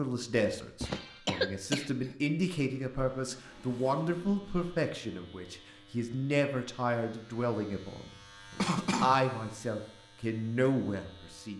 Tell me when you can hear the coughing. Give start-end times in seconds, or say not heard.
0.8-2.1, 8.6-9.2.